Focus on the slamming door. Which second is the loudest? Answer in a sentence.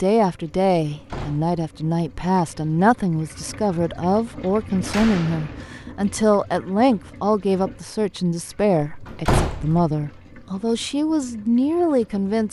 The volume of the slamming door peaks at 9 seconds.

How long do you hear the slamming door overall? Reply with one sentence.
You can hear the slamming door for 3 seconds altogether.